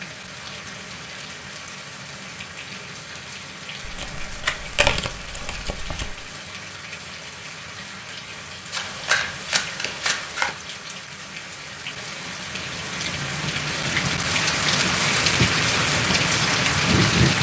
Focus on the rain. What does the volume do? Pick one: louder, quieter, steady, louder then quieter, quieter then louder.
louder.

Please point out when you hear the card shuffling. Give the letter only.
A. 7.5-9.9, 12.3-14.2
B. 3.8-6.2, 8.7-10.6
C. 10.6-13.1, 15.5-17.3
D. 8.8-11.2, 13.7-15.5
B.